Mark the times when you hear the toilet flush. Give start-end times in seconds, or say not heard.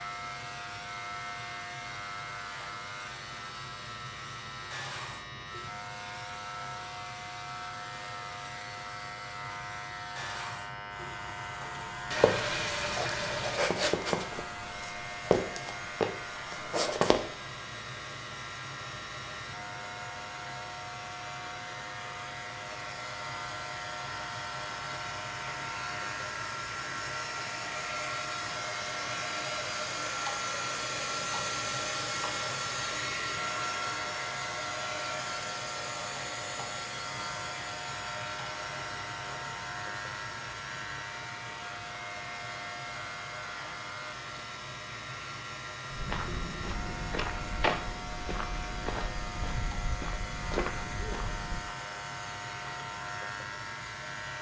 12.1-13.6.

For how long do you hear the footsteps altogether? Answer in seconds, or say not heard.
11 s.